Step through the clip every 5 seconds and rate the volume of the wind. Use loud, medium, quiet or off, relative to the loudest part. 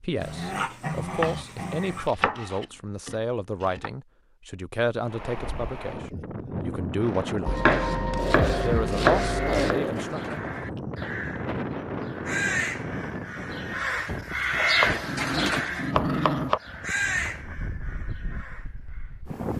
off, loud, loud, medium.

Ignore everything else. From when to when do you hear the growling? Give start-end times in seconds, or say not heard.
0.2-2.1, 8.2-10.1, 15.1-16.6.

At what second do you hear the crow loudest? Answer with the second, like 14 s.
15 s.